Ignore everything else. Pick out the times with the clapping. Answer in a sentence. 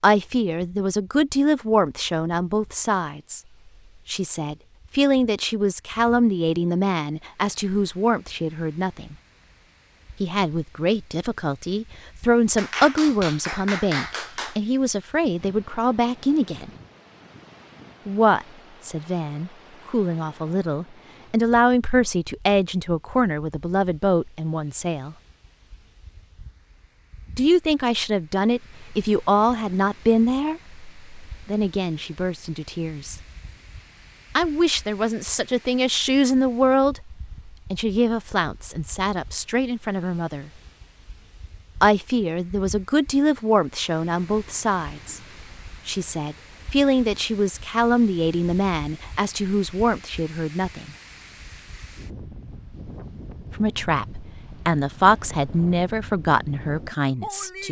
You can hear the clapping from 12.6 to 14.6 s.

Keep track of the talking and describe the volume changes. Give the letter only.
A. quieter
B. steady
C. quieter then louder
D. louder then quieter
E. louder
B.